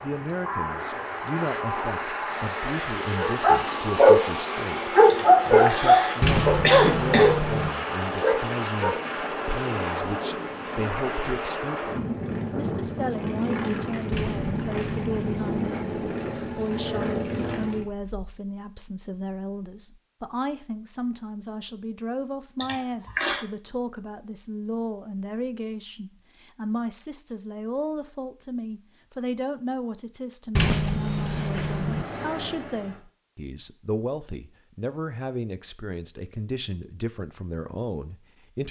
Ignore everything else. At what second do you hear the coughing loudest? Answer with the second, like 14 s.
7 s.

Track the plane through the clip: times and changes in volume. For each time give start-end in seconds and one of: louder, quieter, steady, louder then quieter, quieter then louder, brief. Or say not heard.
0.0-18.1 steady
30.9-33.0 brief.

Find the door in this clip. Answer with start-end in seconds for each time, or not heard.
6.2-7.7, 14.1-15.6, 30.6-32.0.